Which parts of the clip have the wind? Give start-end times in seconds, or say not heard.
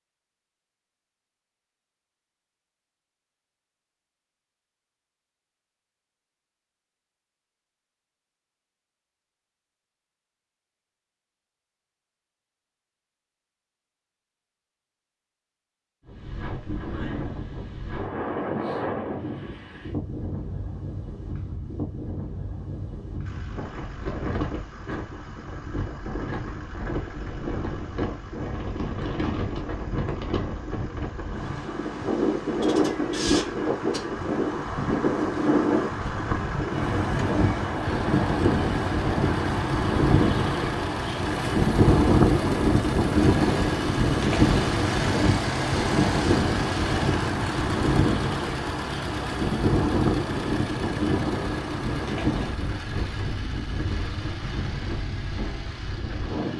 16.1-56.5.